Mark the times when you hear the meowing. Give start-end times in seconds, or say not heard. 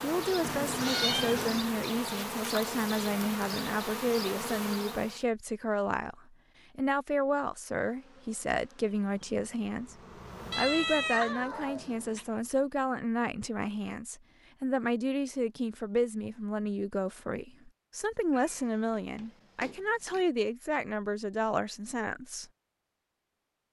0.4-1.8, 10.5-12.2, 18.3-20.2.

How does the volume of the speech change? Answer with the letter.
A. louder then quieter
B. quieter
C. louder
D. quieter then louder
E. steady
E.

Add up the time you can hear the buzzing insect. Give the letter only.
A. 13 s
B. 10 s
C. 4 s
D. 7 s
B.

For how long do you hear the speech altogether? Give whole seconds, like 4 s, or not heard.
22 s.